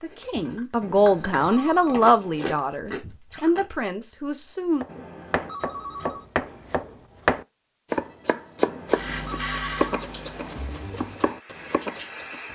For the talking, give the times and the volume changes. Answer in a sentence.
You can hear the talking from 0.0 to 4.8 s, getting quieter.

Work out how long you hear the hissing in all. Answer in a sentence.
You can hear the hissing for 4 seconds altogether.